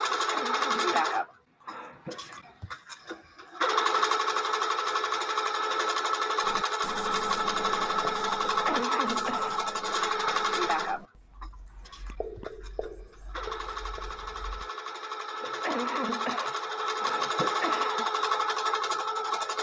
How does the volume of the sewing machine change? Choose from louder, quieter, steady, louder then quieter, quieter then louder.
quieter then louder.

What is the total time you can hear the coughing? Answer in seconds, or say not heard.
6 s.